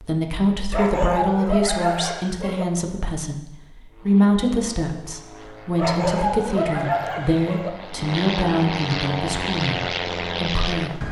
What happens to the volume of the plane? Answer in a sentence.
The volume of the plane goes up.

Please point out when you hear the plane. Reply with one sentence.
The plane can be heard from 3.9 to 11.0 s.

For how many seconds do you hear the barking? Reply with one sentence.
You can hear the barking for 4 seconds altogether.